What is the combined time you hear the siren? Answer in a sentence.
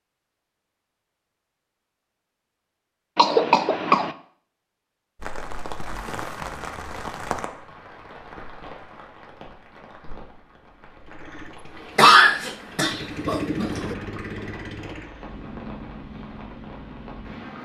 You can't hear the siren here.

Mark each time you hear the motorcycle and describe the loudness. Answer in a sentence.
You can hear the motorcycle from 11.1 to 17.5 s, getting louder then quieter.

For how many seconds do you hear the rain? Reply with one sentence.
The rain can be heard for 12 seconds in total.